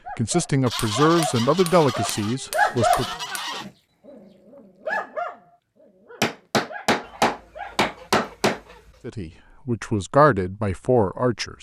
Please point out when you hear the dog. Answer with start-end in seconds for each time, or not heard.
0.1-7.8.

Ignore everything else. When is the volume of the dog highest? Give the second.
3 s.